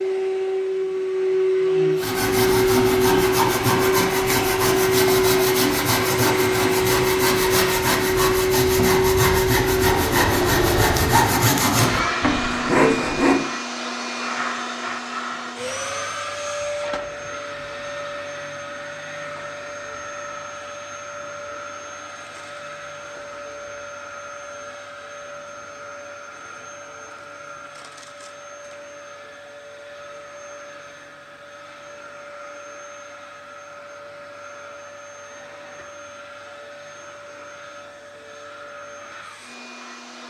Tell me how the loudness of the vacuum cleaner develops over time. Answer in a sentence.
The loudness of the vacuum cleaner goes down.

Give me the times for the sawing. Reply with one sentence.
You can hear the sawing from 1.9 to 13.4 s.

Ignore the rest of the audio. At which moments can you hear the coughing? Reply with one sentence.
The coughing can't be heard in this clip.